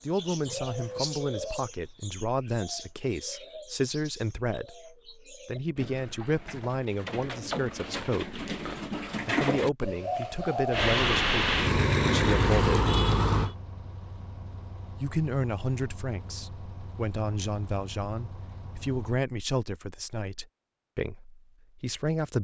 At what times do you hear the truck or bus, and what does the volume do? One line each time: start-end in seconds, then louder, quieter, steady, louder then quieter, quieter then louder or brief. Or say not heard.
10.7-19.2 quieter.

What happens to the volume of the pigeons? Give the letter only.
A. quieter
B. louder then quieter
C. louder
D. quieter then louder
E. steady
D.